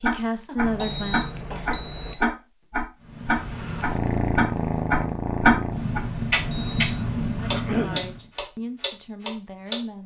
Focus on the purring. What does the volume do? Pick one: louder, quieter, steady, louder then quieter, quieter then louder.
steady.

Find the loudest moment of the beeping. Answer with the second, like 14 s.
1 s.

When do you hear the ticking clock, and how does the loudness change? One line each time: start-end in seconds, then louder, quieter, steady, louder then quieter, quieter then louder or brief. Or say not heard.
0.0-9.8 louder then quieter.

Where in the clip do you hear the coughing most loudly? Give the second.
8 s.